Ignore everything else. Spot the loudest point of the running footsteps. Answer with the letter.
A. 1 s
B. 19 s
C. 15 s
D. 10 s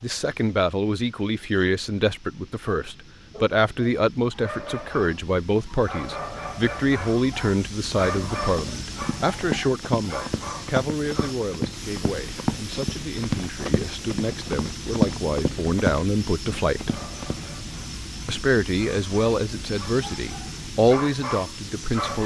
C.